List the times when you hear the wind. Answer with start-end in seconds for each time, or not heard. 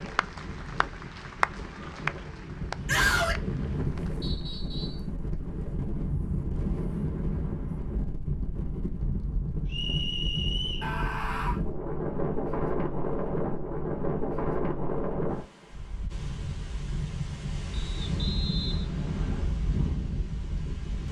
0.0-21.0.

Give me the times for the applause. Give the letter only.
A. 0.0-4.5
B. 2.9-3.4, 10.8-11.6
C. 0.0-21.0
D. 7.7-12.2
A.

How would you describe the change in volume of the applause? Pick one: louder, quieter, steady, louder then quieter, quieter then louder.
louder then quieter.